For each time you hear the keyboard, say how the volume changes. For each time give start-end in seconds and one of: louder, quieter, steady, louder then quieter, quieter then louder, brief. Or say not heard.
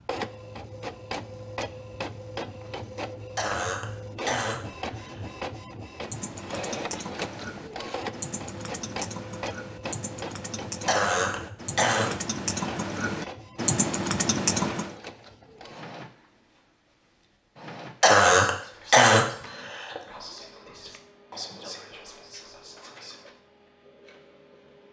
6.0-14.9 louder.